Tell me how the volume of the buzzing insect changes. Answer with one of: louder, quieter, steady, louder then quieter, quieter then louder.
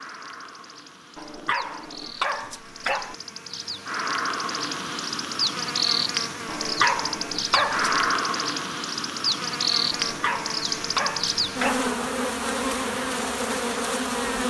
louder.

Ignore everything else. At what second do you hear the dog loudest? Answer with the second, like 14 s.
7 s.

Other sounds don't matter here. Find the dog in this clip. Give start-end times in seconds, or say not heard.
1.1-3.1, 6.5-8.0, 9.9-11.9.